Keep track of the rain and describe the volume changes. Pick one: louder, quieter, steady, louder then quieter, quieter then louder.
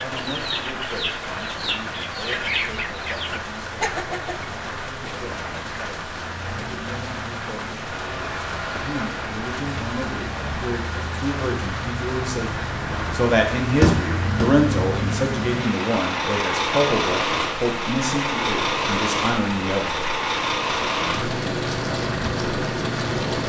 steady.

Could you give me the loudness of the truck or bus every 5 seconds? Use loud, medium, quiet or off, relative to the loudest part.
quiet, medium, medium, loud, loud.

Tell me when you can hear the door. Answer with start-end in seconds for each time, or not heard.
13.8-14.5.